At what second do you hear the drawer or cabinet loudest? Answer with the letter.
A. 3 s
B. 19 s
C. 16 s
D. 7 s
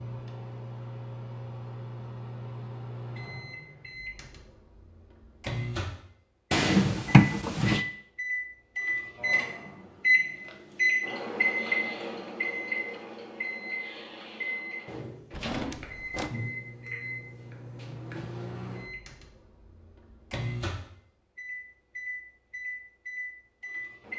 D.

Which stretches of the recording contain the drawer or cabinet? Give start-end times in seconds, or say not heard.
6.5-7.8, 15.3-16.4.